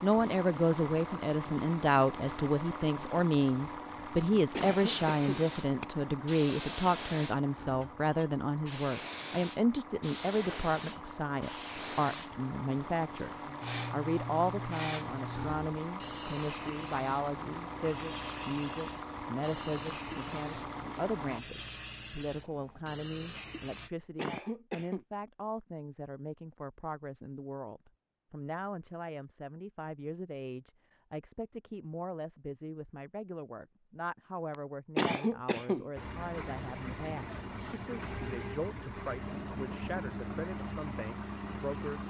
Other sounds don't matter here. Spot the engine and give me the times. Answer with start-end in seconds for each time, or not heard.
0.0-21.4, 36.0-42.0.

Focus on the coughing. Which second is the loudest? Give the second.
35 s.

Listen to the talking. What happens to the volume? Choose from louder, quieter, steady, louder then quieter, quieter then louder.
quieter.